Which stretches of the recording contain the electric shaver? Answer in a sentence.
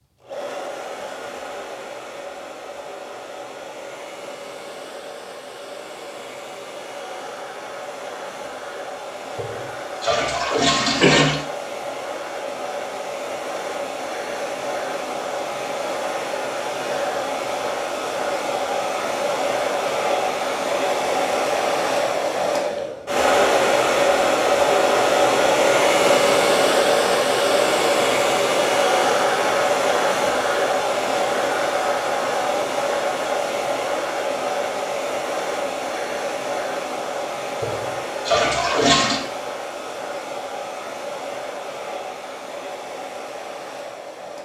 The electric shaver can't be heard in this clip.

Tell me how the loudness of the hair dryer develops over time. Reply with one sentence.
The volume of the hair dryer goes up, then down.